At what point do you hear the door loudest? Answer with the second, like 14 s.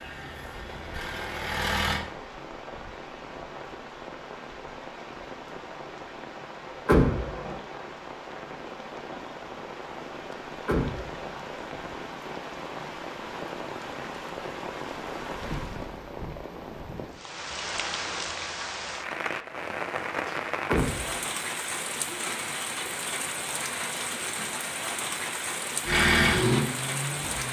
7 s.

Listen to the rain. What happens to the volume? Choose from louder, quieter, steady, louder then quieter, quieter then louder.
louder.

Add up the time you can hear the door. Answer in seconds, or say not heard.
2 s.